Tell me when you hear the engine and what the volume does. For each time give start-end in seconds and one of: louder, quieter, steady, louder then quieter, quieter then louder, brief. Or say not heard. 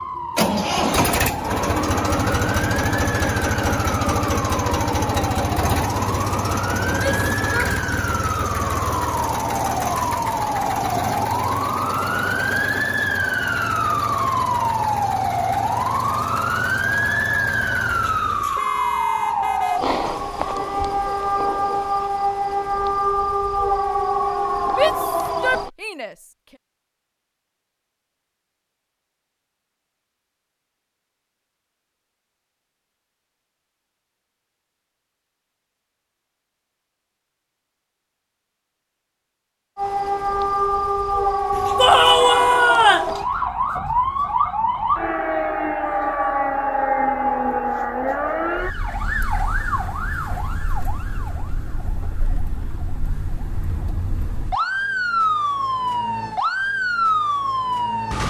0.0-18.4 quieter.